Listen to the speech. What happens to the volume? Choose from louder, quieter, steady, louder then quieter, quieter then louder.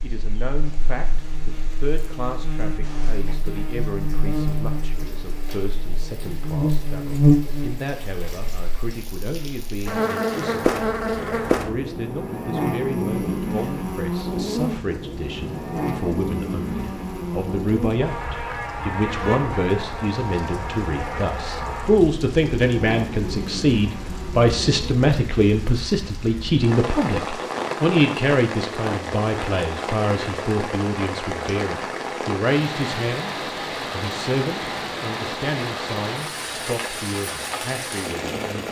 louder then quieter.